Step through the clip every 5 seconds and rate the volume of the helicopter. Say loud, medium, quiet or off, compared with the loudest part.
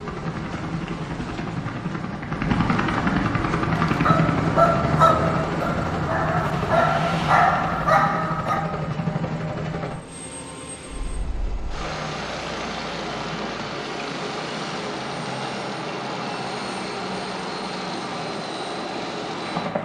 loud, loud, medium, medium.